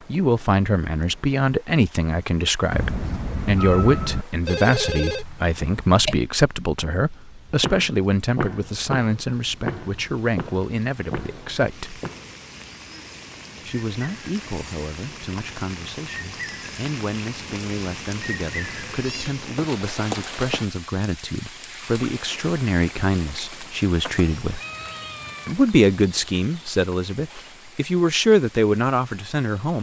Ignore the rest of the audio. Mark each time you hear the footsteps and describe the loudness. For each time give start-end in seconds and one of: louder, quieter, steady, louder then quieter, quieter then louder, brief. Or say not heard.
7.6-12.3 quieter.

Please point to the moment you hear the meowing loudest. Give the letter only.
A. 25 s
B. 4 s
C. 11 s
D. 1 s
B.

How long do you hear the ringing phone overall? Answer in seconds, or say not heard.
2 s.